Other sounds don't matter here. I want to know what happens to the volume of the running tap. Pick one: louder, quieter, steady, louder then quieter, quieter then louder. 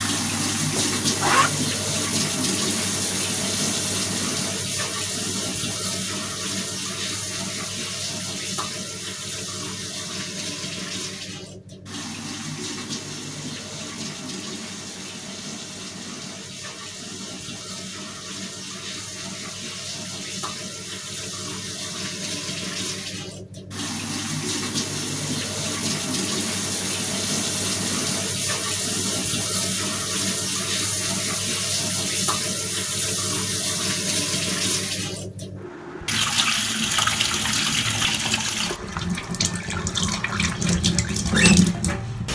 quieter then louder.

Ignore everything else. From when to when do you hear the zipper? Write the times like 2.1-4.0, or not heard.
0.0-1.5.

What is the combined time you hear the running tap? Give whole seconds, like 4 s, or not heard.
42 s.